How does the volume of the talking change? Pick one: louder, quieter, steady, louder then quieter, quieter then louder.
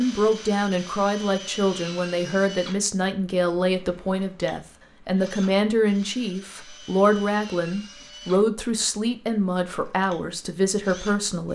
steady.